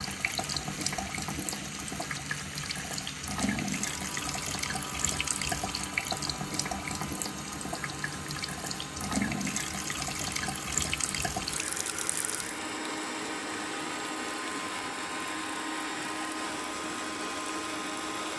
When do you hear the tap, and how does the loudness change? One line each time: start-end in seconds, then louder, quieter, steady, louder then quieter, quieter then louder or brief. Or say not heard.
0.0-18.3 quieter.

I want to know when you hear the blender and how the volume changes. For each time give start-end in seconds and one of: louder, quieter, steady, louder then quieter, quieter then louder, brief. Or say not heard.
0.0-18.3 louder.